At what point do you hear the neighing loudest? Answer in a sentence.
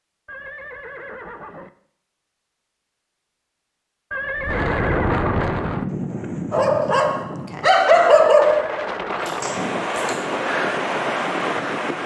The volume of the neighing peaks at 5 seconds.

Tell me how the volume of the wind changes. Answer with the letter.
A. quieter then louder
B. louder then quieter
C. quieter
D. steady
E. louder
A.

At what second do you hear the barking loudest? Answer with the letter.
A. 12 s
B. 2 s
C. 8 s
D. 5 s
C.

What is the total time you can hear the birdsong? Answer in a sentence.
You can't hear the birdsong here.